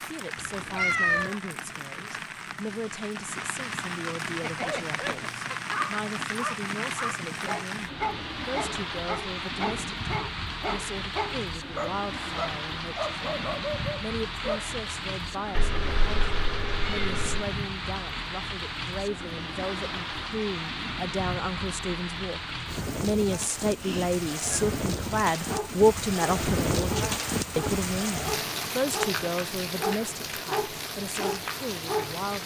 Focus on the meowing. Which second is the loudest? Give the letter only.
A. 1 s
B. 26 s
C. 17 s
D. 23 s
A.